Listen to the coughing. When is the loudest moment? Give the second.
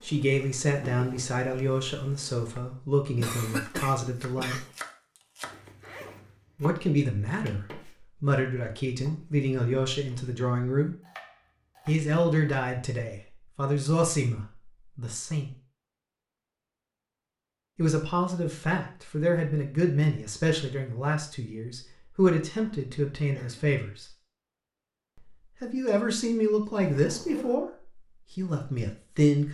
4 s.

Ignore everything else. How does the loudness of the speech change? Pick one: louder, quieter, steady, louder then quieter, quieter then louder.
steady.